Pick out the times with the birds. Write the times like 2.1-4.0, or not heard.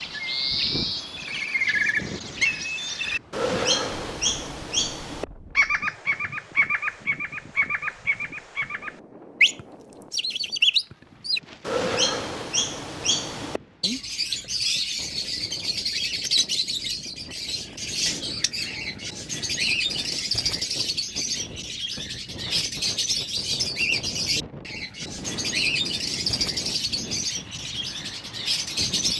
0.0-29.1.